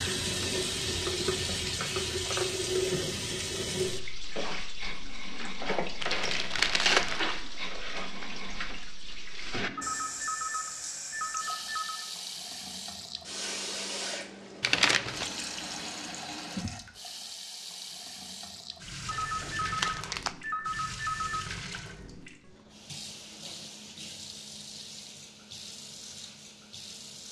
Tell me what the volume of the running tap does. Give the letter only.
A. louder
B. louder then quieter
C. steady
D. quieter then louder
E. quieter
E.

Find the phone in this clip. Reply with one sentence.
You can hear the phone from 9.8 to 12.1 s and from 19.1 to 21.5 s.